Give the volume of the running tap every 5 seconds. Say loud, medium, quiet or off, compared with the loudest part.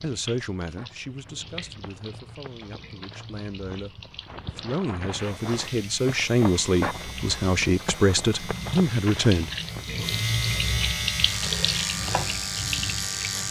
quiet, medium, loud.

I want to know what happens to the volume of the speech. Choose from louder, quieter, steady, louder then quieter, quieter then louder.
louder.